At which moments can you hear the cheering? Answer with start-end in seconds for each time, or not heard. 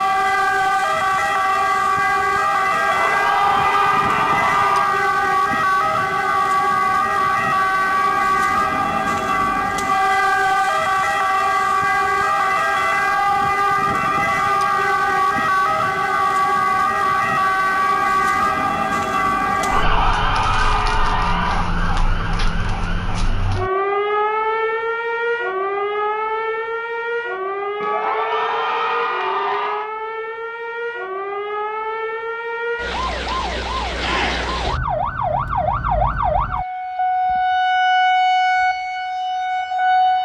2.7-4.8, 19.4-21.7, 27.8-29.9.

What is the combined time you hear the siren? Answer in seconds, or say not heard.
40 s.